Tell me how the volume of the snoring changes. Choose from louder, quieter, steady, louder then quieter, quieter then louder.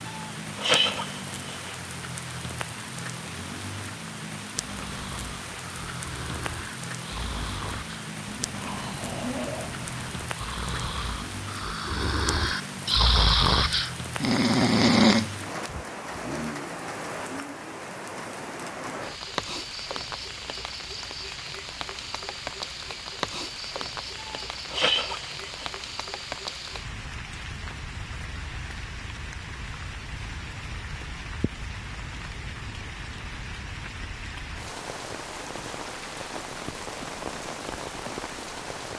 louder.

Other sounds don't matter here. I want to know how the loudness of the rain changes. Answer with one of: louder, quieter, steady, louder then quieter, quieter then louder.
steady.